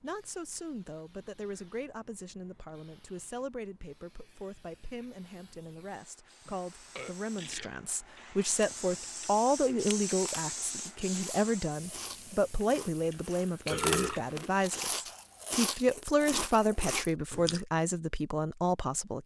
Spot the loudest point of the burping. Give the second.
14 s.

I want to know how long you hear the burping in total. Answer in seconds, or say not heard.
3 s.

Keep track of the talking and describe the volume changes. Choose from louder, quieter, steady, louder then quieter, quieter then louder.
louder.